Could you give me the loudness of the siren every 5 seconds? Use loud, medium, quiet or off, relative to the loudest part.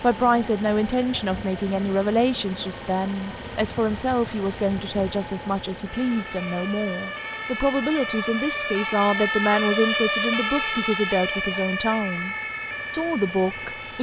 quiet, loud, loud.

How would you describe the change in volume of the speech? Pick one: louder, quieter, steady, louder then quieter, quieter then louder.
steady.